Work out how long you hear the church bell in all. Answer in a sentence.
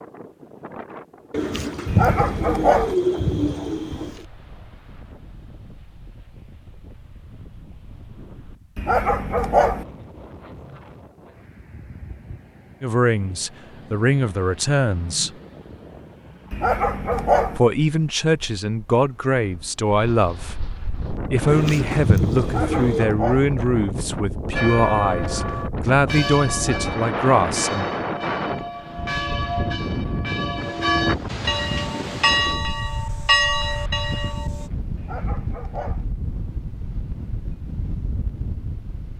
You can hear the church bell for 10 seconds altogether.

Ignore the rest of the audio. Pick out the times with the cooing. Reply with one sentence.
You can hear the cooing from 1.3 to 4.2 s and from 21.4 to 23.1 s.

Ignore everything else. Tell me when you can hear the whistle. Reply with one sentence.
You can't hear the whistle here.